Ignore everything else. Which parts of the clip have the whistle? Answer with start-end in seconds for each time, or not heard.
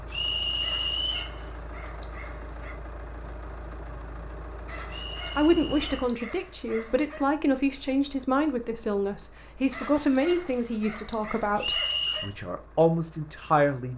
0.1-1.4, 4.9-6.1, 11.6-12.3.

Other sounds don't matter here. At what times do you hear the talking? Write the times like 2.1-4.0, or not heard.
5.3-13.9.